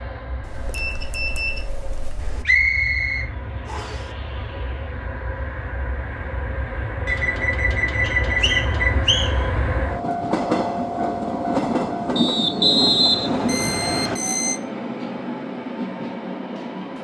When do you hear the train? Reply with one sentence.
You can hear the train from 0.0 to 16.9 s.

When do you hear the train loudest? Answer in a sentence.
The loudest moment of the train is at 12 seconds.